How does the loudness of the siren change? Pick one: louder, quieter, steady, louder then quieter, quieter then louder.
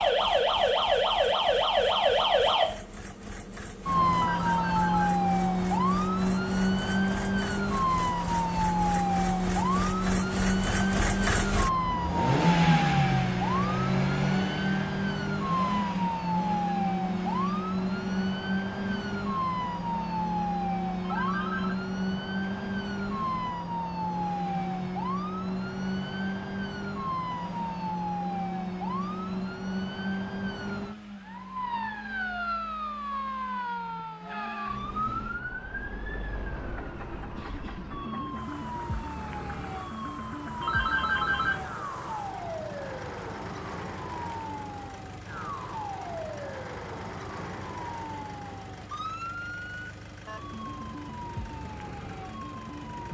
quieter.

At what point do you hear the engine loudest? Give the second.
13 s.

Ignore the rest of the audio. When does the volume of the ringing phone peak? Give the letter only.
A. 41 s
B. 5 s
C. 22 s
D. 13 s
A.